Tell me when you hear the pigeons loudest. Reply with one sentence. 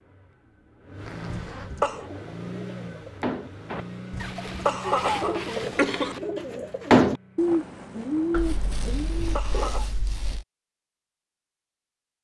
The loudest moment of the pigeons is at 7 seconds.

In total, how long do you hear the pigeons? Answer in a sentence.
You can hear the pigeons for 8 seconds altogether.